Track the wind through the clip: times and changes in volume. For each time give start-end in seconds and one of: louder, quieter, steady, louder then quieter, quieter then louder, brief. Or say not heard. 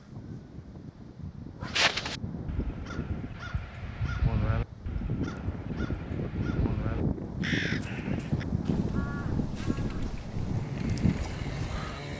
0.0-12.1 louder.